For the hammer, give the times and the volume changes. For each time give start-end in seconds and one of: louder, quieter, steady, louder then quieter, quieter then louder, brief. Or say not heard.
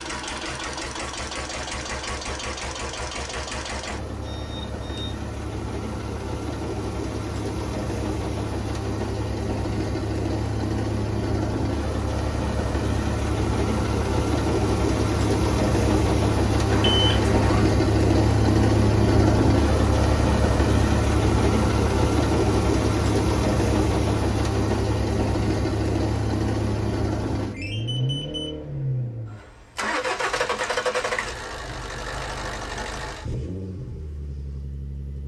not heard.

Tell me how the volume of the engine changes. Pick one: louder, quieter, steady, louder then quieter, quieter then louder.
louder then quieter.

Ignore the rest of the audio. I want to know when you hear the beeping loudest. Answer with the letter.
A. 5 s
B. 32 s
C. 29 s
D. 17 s
D.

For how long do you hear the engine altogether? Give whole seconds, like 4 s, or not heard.
35 s.